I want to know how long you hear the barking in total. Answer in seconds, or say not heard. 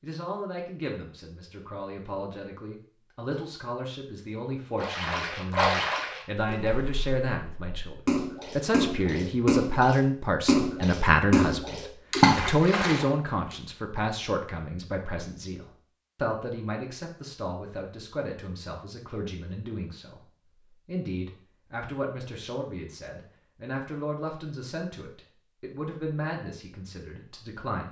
not heard.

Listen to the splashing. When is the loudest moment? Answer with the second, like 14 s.
12 s.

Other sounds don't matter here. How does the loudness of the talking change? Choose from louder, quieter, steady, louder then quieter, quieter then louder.
louder then quieter.